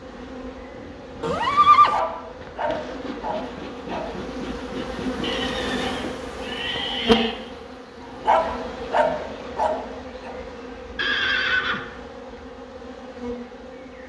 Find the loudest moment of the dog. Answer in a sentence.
The loudest moment of the dog is at 8 seconds.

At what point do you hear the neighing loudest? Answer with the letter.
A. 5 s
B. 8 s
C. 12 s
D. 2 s
D.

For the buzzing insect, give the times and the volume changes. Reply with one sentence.
The buzzing insect can be heard from 0.0 to 14.0 s, getting louder then quieter.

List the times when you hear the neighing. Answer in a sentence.
You can hear the neighing from 1.2 to 2.0 s, from 5.2 to 7.3 s and from 10.9 to 11.8 s.